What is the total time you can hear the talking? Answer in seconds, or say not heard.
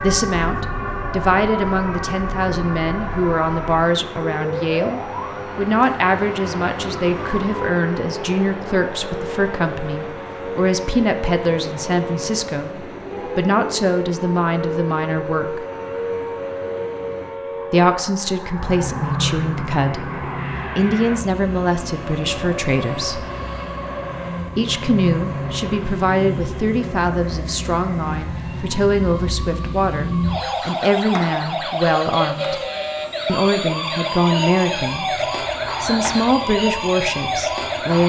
33 s.